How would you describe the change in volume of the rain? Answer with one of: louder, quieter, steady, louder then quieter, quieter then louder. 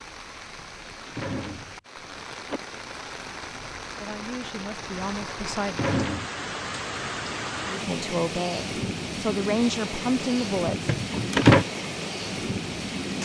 louder.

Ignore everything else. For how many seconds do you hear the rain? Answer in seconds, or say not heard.
13 s.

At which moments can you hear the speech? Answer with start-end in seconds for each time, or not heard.
4.0-5.8, 7.7-10.9.